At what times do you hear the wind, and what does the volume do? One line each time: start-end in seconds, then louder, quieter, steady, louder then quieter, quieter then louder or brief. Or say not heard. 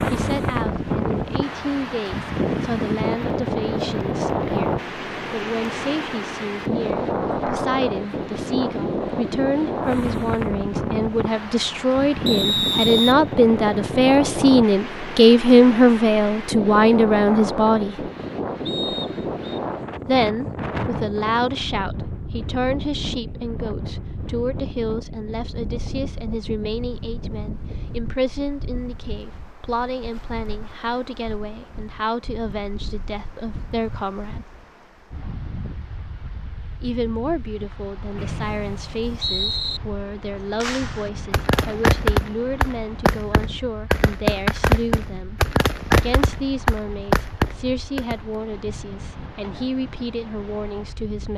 0.0-51.3 quieter.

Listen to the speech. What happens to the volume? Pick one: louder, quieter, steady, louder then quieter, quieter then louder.
louder then quieter.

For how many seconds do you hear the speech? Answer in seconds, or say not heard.
46 s.